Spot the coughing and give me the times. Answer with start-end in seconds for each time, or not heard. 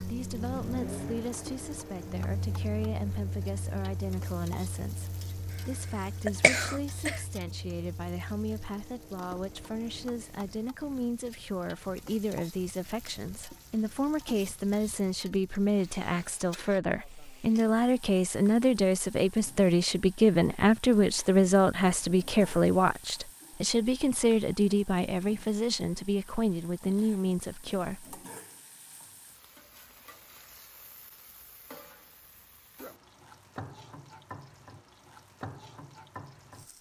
6.2-7.2.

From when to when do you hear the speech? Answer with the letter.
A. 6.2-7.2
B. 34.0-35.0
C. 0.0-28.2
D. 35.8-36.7
C.